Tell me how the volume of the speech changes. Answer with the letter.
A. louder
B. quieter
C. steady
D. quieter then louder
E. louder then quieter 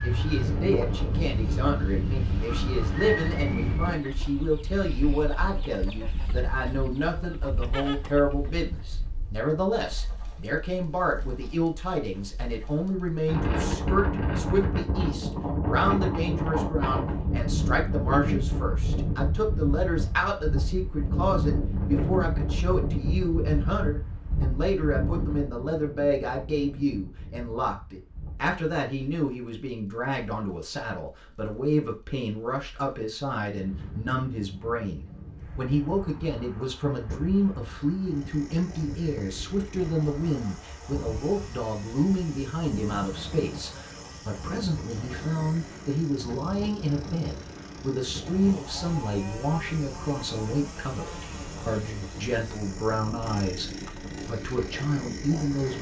C.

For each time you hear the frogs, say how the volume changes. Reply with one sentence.
The frogs can't be heard in this clip.